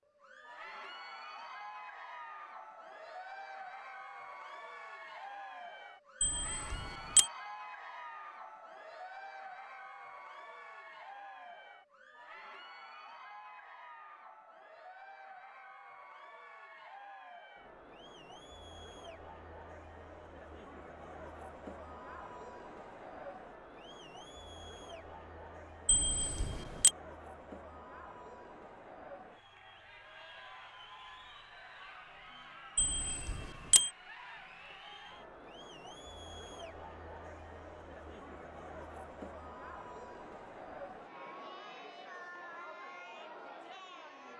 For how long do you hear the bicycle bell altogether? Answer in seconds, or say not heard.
3 s.